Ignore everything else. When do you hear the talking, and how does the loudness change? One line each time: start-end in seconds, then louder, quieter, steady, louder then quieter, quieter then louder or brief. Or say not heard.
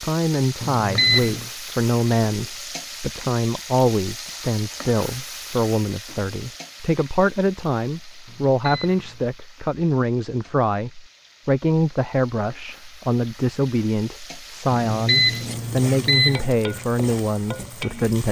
0.0-18.2 steady.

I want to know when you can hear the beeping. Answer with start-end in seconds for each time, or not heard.
0.6-1.5, 8.2-9.3, 14.7-16.4.